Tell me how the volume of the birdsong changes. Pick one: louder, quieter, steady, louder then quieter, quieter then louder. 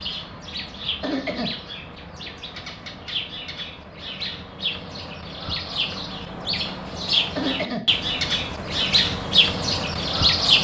louder.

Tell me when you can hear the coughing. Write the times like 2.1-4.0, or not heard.
1.0-1.6, 7.3-7.8.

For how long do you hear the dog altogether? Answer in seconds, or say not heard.
not heard.